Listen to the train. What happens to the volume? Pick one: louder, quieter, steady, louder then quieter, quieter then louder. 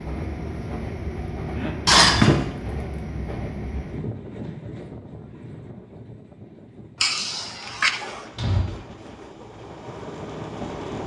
quieter then louder.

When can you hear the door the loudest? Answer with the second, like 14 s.
2 s.